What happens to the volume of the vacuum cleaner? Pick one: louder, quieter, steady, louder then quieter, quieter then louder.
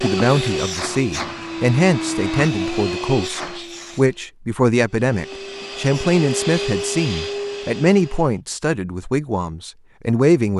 quieter then louder.